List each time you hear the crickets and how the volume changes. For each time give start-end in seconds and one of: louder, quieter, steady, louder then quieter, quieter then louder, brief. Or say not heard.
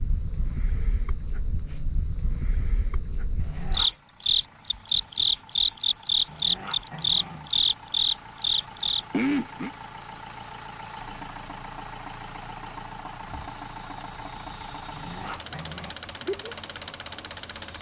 0.0-17.7 louder then quieter.